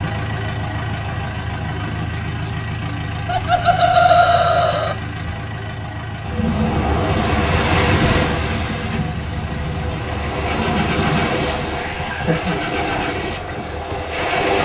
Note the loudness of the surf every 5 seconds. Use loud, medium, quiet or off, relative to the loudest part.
off, loud, loud.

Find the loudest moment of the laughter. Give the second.
4 s.